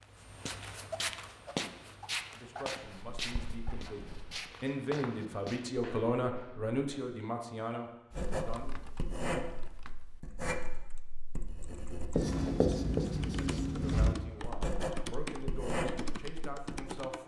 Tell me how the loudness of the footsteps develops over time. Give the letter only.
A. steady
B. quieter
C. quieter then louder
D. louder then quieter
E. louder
B.